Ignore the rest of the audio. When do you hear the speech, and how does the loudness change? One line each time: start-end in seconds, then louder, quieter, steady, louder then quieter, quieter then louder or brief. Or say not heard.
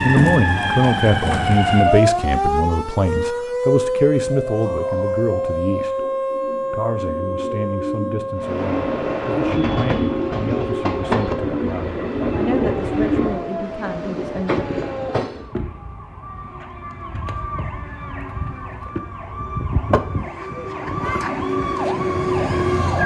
0.0-14.7 quieter.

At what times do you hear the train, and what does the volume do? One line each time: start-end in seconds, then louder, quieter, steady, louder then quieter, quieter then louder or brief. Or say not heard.
8.3-15.5 steady.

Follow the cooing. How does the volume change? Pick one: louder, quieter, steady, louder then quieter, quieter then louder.
louder.